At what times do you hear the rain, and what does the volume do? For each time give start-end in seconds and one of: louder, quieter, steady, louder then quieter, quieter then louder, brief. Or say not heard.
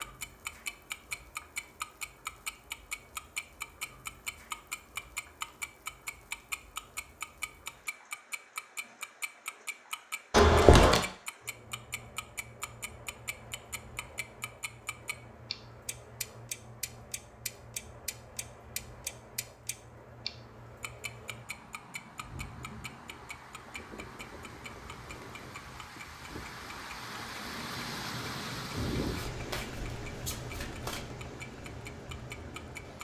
0.0-33.0 louder.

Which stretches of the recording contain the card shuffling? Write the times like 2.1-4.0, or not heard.
10.3-11.1, 29.1-31.1.